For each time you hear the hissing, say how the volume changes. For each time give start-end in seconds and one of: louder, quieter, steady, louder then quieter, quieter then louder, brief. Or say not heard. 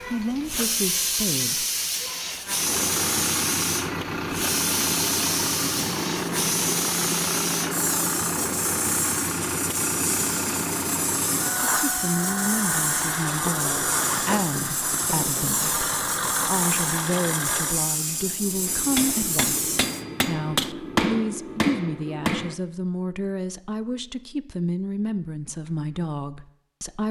0.0-20.1 steady.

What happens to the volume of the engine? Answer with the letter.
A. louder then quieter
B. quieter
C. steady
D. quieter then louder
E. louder
C.